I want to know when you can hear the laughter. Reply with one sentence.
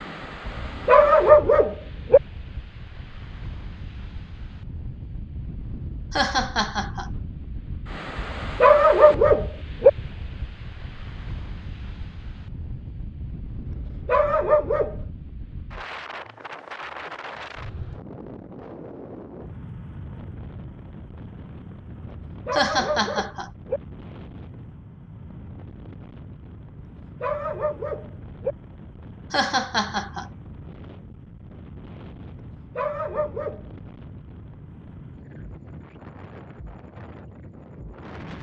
You can hear the laughter from 6.1 to 7.1 s, from 22.5 to 23.5 s and from 29.3 to 30.3 s.